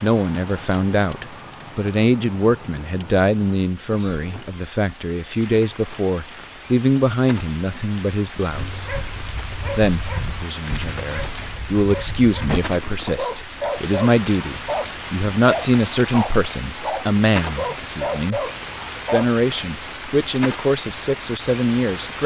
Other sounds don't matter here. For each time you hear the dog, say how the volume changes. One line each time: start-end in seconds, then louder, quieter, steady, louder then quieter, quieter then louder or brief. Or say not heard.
8.5-19.3 louder.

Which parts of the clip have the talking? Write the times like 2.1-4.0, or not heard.
0.0-8.8, 9.8-18.4, 19.1-22.2.